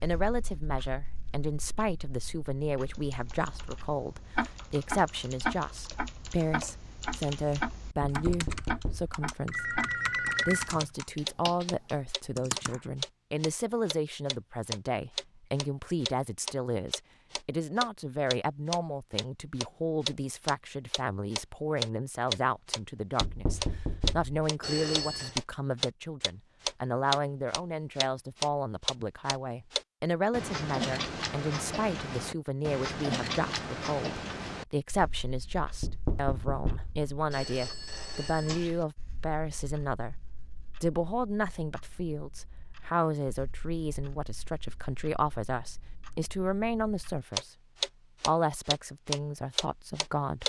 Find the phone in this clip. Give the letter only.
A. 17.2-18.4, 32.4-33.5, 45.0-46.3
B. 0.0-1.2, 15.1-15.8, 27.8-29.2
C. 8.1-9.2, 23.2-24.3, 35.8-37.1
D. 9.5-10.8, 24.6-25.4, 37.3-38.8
D.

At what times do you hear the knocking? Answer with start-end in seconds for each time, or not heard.
8.1-9.2, 23.2-24.3, 35.8-37.1.